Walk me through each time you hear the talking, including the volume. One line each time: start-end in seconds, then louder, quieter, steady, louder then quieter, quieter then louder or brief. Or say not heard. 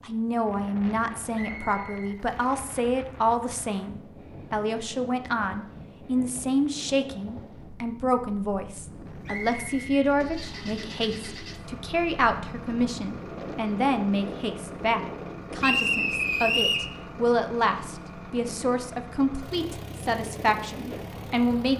0.0-21.7 steady.